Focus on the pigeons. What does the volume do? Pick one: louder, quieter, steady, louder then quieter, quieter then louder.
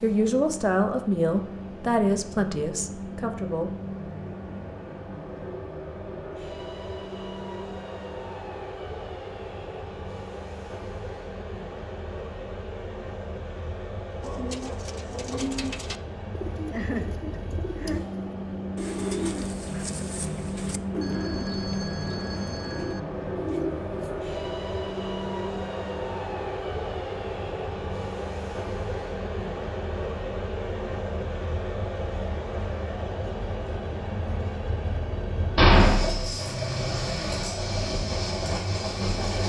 steady.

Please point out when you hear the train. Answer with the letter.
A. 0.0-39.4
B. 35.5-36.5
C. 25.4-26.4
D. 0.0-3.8
A.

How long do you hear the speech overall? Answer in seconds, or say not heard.
4 s.